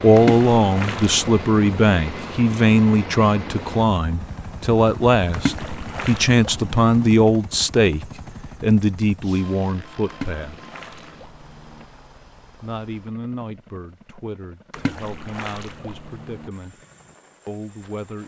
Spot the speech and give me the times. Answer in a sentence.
The speech can be heard from 0.0 to 10.6 s, from 12.6 to 16.8 s and from 17.4 to 18.2 s.